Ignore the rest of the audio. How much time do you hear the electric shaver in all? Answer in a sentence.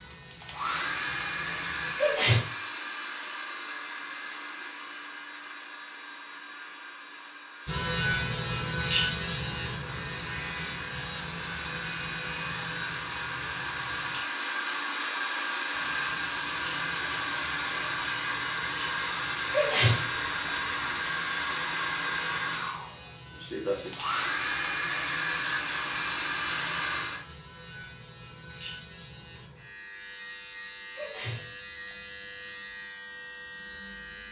The electric shaver can be heard for 27 seconds in total.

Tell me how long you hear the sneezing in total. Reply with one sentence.
The sneezing can be heard for 4 seconds in total.